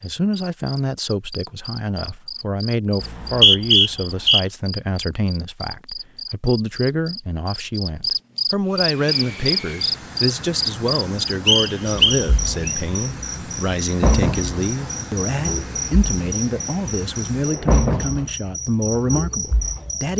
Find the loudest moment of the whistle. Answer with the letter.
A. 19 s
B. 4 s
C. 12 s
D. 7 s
B.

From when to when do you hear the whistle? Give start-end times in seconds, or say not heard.
3.0-4.5, 11.4-12.7.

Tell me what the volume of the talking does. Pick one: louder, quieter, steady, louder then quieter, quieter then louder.
steady.